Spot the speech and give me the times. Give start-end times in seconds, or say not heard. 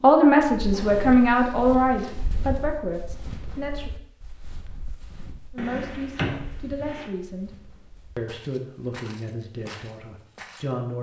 0.0-3.9, 5.5-7.5, 8.2-10.9.